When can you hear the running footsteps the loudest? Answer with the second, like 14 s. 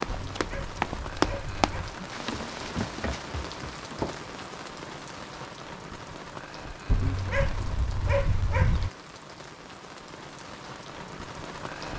1 s.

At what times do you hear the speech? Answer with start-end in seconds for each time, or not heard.
not heard.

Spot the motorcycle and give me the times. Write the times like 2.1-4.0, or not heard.
not heard.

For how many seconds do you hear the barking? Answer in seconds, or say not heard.
4 s.